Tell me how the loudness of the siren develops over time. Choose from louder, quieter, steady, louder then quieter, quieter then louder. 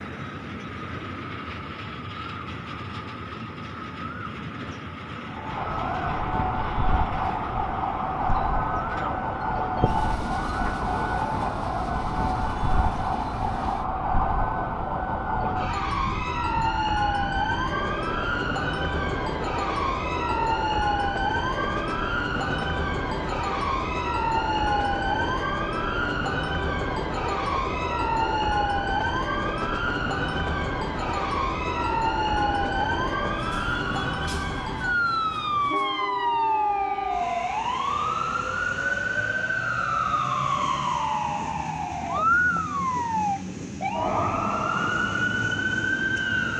steady.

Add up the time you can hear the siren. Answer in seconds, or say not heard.
41 s.